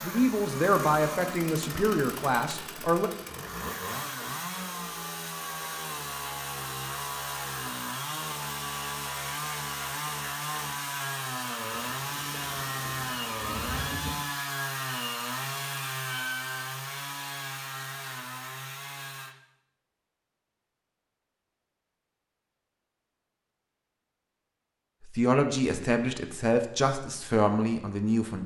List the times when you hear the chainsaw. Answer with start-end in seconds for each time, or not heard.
0.0-19.4.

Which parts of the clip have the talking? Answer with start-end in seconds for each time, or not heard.
0.0-3.1, 25.0-28.4.